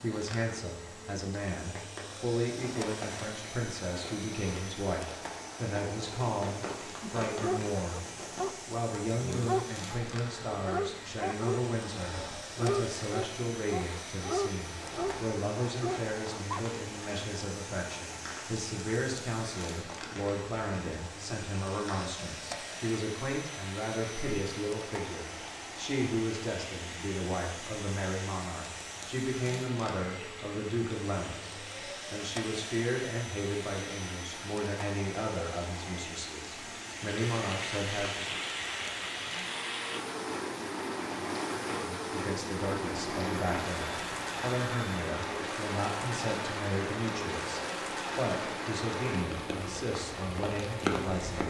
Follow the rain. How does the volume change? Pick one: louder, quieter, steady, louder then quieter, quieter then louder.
louder.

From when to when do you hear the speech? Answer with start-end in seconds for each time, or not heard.
0.0-8.1, 8.7-38.4, 42.0-51.4.